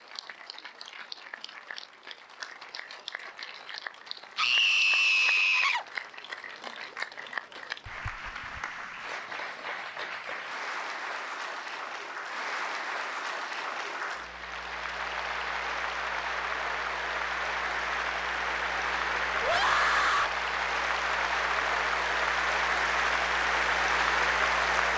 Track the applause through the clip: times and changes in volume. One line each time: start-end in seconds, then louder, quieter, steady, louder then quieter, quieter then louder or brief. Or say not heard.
0.0-24.9 louder.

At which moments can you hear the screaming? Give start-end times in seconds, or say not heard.
4.3-5.8, 19.4-20.4.